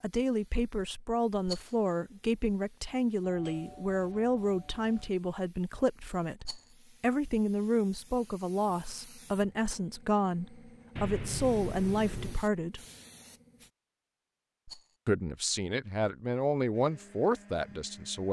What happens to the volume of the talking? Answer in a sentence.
The volume of the talking stays about the same.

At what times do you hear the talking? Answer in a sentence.
The talking can be heard from 0.0 to 12.8 s and from 15.1 to 18.2 s.